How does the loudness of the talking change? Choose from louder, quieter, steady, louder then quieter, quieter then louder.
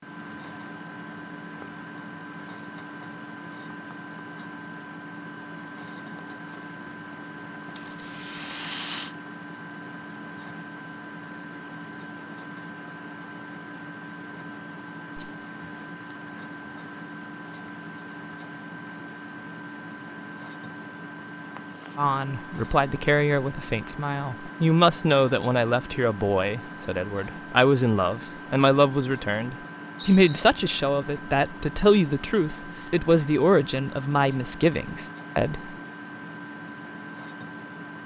steady.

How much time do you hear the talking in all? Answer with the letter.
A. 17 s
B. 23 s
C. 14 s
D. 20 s
C.